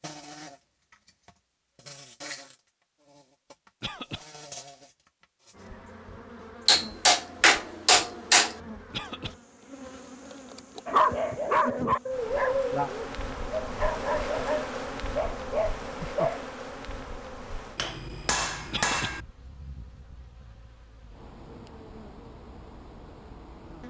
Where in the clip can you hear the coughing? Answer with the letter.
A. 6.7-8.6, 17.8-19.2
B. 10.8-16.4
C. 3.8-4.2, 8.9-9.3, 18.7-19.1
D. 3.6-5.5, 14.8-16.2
C.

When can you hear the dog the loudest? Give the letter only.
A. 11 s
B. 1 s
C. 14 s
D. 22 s
A.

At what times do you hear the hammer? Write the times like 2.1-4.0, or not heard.
6.7-8.6, 17.8-19.2.